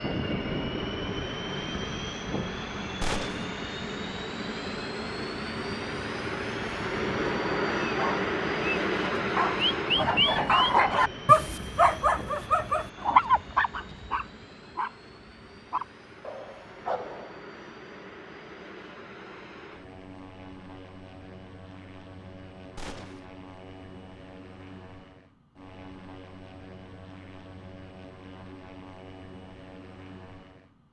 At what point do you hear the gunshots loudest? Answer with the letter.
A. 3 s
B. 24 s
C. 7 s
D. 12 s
A.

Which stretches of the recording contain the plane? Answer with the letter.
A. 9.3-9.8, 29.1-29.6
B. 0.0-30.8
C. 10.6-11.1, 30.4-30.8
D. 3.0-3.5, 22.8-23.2
B.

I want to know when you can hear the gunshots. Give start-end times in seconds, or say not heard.
3.0-3.5, 22.8-23.2.